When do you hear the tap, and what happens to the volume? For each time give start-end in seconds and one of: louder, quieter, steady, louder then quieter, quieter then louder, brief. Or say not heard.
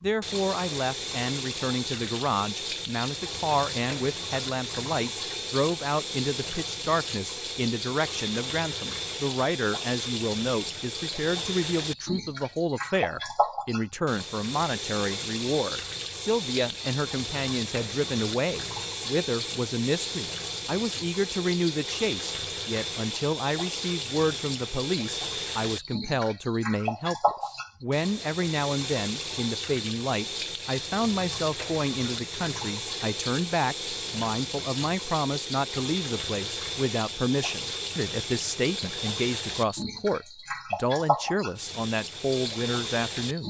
0.0-43.4 steady.